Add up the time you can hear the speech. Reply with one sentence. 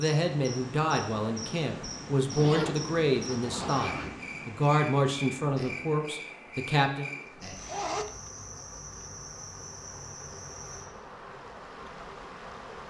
You can hear the speech for 7 seconds altogether.